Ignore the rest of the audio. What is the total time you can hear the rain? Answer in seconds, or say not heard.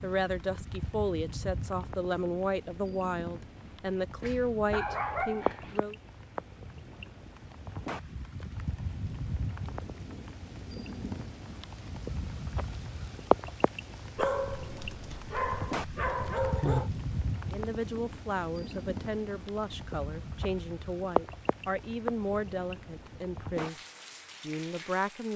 25 s.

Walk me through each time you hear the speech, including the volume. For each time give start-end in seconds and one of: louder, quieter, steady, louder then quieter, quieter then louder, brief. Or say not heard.
0.0-6.0 steady
17.4-23.8 steady
24.4-25.3 brief.